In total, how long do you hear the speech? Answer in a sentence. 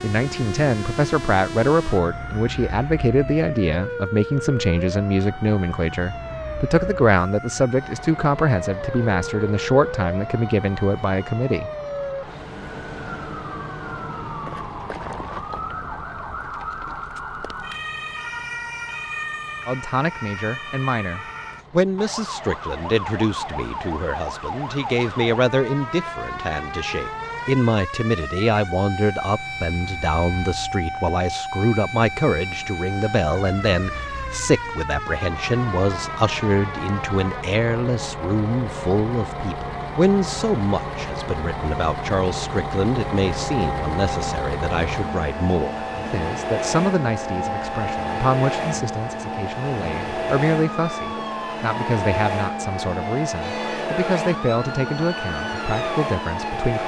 The speech can be heard for 49 seconds in total.